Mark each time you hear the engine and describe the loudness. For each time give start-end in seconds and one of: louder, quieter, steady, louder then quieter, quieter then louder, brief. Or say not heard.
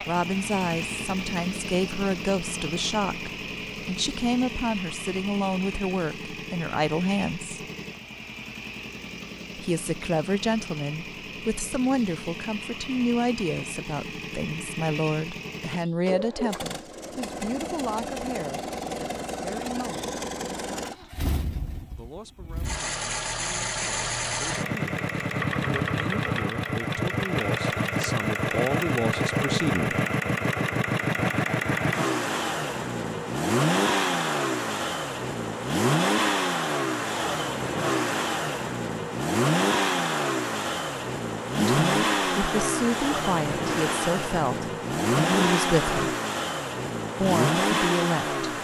0.0-48.6 louder.